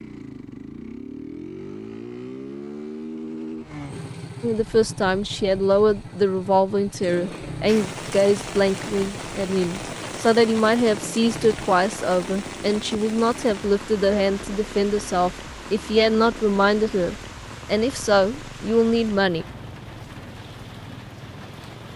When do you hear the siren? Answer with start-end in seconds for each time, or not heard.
not heard.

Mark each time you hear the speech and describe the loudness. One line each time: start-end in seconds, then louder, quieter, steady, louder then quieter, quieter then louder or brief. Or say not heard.
4.4-19.4 steady.